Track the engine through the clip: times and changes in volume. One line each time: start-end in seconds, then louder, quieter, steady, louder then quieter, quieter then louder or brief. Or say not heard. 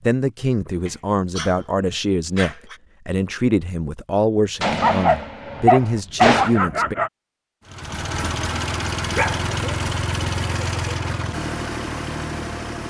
7.7-12.8 steady.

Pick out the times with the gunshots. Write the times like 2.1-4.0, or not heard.
4.6-6.6.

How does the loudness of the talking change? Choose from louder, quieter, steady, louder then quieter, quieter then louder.
steady.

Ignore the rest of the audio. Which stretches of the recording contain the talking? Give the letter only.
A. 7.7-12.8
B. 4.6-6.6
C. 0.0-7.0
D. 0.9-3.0
C.